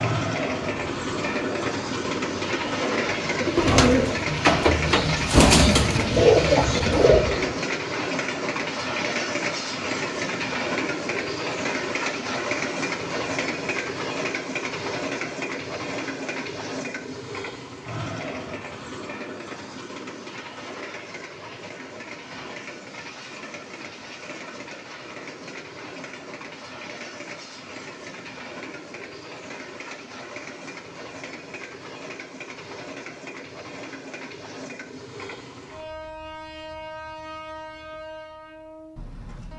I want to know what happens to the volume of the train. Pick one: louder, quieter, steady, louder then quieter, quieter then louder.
quieter.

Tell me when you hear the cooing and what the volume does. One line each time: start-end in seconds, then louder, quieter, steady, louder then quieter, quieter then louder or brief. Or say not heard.
0.6-7.5 louder.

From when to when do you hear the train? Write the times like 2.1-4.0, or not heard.
0.0-39.5.